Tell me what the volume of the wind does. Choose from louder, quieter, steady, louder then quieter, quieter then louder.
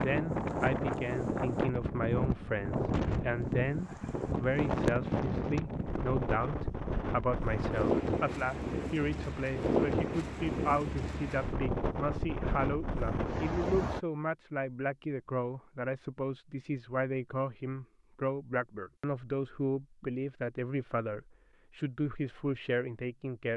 steady.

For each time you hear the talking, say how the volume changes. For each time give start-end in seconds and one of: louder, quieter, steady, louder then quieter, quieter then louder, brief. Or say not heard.
0.0-23.5 steady.